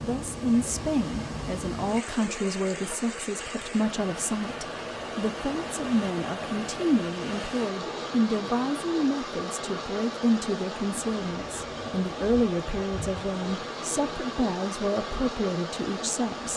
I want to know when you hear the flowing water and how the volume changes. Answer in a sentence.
The flowing water can be heard from 0.0 to 16.5 s, at a steady volume.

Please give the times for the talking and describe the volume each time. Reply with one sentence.
The talking can be heard from 0.0 to 16.5 s, at a steady volume.